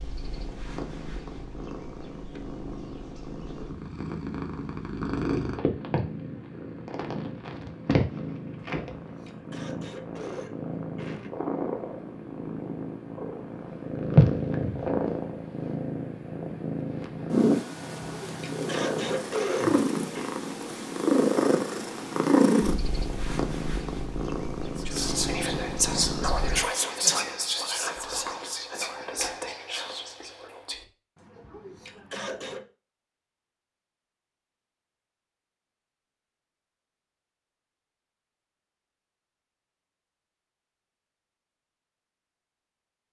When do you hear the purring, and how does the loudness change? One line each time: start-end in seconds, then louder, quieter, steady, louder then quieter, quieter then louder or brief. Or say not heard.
0.0-26.6 louder.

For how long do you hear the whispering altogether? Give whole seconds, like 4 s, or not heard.
6 s.